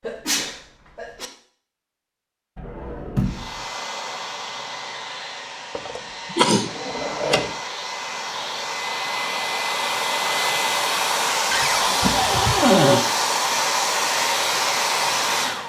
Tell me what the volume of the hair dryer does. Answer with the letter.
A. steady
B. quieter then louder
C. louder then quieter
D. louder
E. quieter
D.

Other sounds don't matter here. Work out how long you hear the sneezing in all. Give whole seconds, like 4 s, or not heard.
2 s.